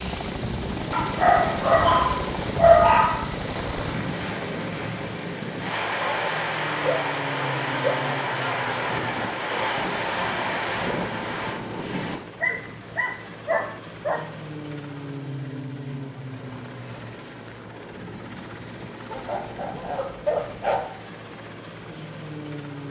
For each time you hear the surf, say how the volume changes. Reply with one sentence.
The surf can be heard from 0.0 to 12.2 s, getting louder.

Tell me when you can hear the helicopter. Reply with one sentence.
The helicopter can be heard from 0.0 to 22.8 s.